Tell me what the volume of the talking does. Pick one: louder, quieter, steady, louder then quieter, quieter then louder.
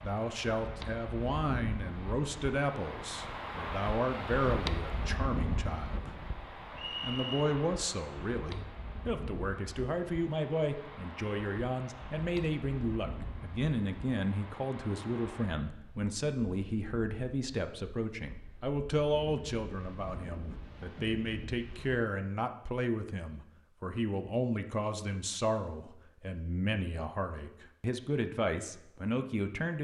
steady.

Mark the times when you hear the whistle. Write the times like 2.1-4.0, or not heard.
6.8-7.5.